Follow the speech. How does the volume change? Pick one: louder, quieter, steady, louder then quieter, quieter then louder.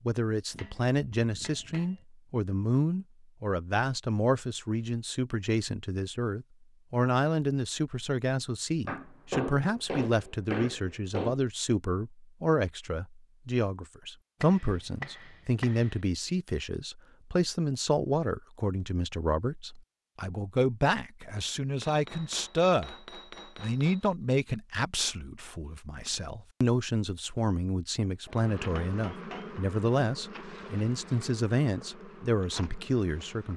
steady.